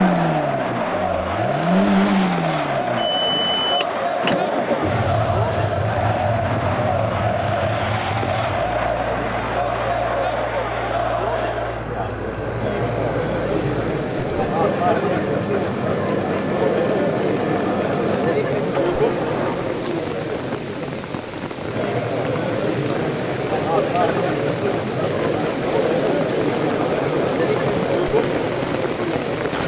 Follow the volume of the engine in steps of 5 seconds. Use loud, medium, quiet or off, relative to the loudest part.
loud, medium, medium, medium, off, off.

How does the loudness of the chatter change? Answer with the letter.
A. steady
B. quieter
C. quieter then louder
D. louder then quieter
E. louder
A.